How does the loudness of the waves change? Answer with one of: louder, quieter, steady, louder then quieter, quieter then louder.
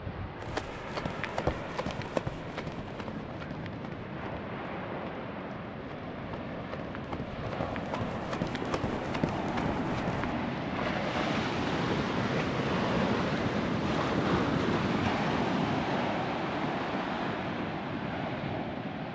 louder.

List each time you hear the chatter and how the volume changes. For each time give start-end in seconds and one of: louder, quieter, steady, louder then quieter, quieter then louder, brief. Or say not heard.
not heard.